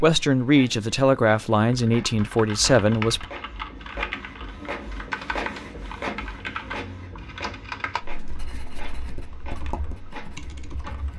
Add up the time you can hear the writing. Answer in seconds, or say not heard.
3 s.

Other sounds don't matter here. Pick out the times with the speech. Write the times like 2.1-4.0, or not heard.
0.0-3.2.